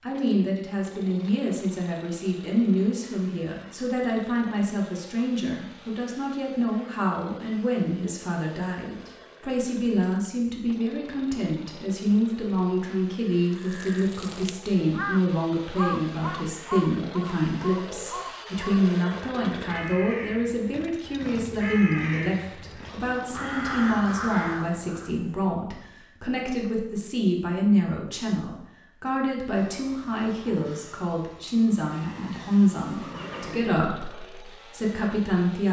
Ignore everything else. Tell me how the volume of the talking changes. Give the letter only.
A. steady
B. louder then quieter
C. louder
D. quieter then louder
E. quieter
A.